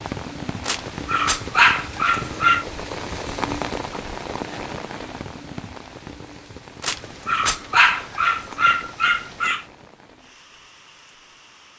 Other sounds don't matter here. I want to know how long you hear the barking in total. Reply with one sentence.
You can hear the barking for 5 seconds altogether.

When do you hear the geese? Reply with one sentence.
You can't hear the geese here.